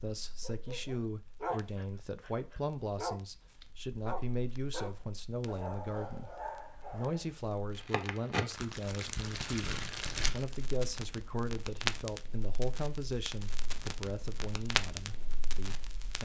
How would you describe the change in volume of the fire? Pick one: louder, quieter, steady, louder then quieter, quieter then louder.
louder.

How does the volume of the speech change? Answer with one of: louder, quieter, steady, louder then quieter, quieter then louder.
steady.